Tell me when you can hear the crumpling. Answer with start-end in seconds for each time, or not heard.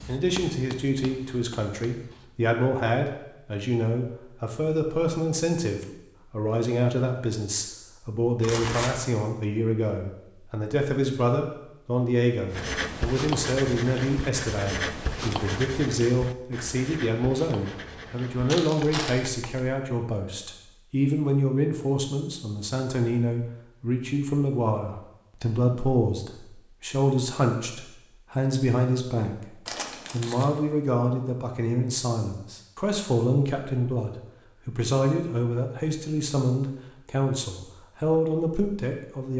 8.4-8.9, 18.4-19.2, 29.6-30.4.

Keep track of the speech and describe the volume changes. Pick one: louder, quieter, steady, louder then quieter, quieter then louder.
steady.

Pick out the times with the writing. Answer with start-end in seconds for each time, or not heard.
0.0-2.3, 12.5-19.6.